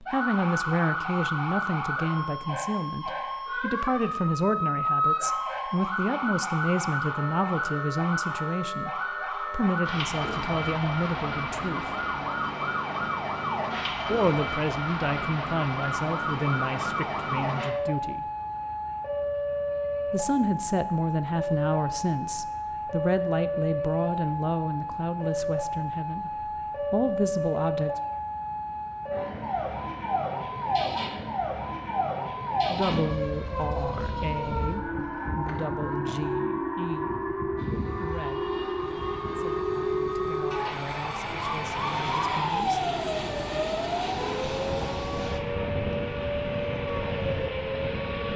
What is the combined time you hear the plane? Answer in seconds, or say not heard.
11 s.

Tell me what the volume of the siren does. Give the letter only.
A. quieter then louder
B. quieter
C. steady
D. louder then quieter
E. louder
C.